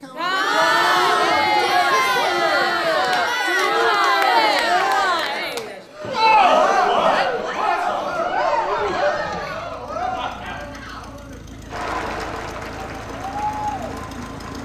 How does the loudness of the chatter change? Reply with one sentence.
The volume of the chatter goes down.